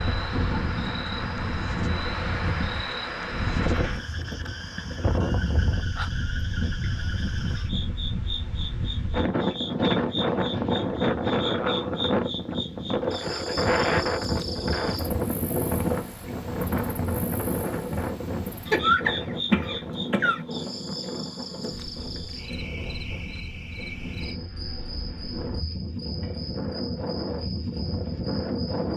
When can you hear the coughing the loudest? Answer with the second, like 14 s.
19 s.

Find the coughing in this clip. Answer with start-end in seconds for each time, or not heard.
18.7-20.4.